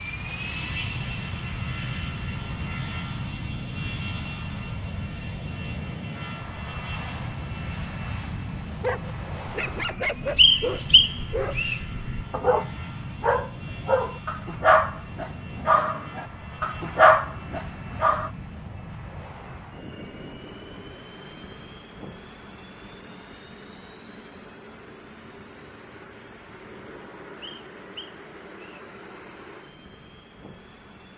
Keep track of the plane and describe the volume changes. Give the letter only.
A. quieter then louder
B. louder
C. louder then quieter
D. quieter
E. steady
D.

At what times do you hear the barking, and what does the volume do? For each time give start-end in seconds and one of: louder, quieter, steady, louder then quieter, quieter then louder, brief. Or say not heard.
8.8-18.3 louder.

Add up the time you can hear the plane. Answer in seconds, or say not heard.
31 s.